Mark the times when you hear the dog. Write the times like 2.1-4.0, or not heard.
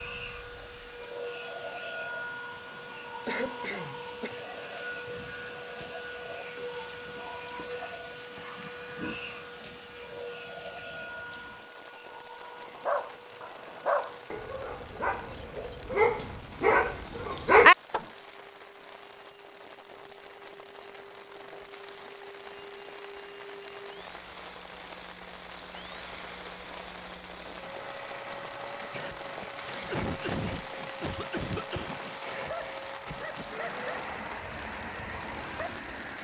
12.4-18.0, 32.4-35.9.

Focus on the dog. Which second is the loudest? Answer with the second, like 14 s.
18 s.